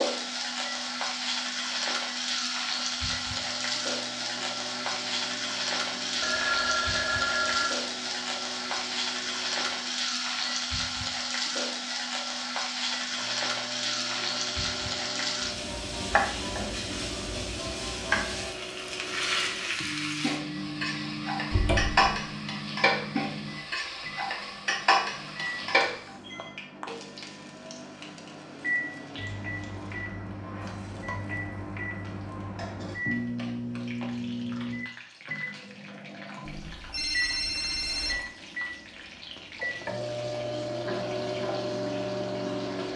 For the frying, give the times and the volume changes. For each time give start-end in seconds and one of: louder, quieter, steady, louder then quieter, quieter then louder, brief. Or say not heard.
0.0-42.9 quieter.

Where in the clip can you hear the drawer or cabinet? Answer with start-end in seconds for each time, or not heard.
21.5-22.1.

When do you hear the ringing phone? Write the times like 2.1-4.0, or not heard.
6.2-7.7, 25.2-26.5, 36.5-38.2.